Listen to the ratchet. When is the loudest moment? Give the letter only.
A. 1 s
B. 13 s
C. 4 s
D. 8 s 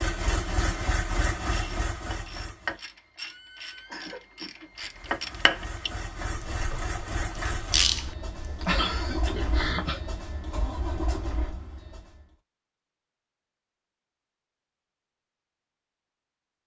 D.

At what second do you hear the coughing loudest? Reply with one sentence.
The loudest moment of the coughing is at 9 seconds.